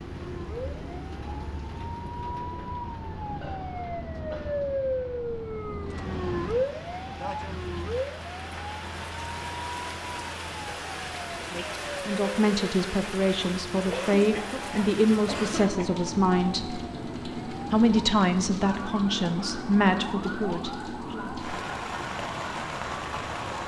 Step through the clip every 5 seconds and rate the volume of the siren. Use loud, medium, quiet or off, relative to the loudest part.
loud, loud, medium, medium, medium.